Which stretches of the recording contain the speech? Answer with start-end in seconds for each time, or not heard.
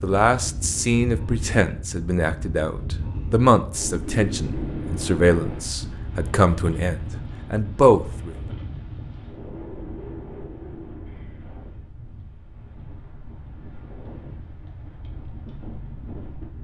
0.0-8.3.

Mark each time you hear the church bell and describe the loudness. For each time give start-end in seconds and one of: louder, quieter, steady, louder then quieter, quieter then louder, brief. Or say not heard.
not heard.